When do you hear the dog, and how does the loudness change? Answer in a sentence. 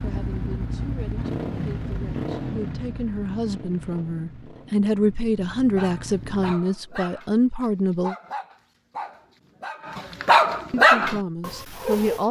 The dog can be heard from 5.7 to 12.2 s, getting louder.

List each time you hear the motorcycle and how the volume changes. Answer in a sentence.
The motorcycle can be heard from 0.0 to 6.5 s, getting quieter.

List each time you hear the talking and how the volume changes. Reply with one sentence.
The talking can be heard from 0.0 to 8.2 s, getting louder; and briefly from 10.7 to 12.2 s.